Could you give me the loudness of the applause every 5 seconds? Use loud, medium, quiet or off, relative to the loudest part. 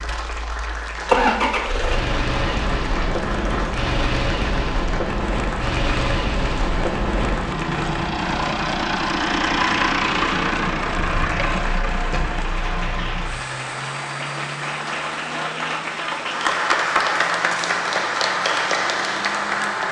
medium, medium, medium, loud.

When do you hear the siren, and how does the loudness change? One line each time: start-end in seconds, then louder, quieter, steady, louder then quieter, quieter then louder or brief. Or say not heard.
not heard.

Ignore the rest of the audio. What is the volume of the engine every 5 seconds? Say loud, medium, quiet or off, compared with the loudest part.
loud, loud, loud, quiet.